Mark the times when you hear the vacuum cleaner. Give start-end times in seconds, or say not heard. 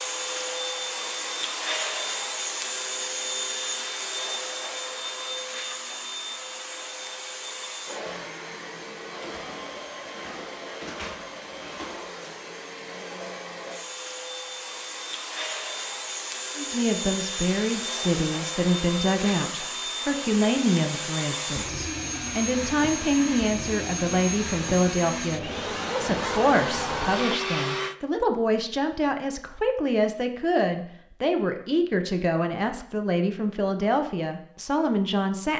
0.0-27.9.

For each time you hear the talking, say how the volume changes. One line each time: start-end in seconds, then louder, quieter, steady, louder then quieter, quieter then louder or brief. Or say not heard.
16.6-35.5 steady.